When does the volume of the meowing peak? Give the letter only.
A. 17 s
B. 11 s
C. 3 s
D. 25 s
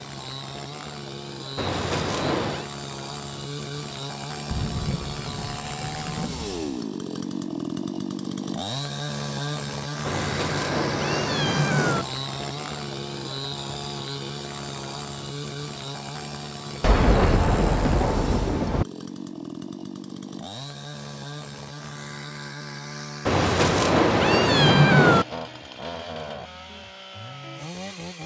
D.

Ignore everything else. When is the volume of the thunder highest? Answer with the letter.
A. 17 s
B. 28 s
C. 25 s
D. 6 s
A.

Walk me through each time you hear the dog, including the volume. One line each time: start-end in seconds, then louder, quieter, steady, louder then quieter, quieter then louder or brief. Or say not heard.
not heard.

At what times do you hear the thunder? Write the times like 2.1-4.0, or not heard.
4.5-6.8, 16.8-18.9.